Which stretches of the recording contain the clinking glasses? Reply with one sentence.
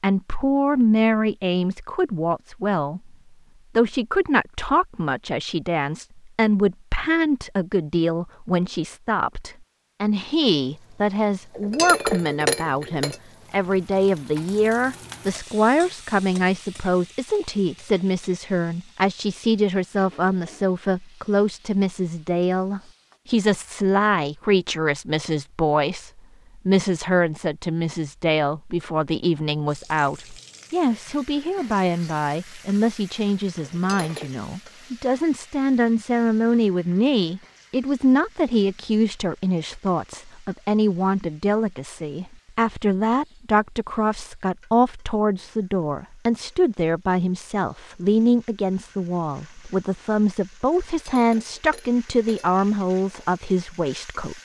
The clinking glasses can be heard from 11.6 to 13.2 s, from 33.6 to 34.3 s and from 50.9 to 52.6 s.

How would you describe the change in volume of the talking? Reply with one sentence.
The volume of the talking stays about the same.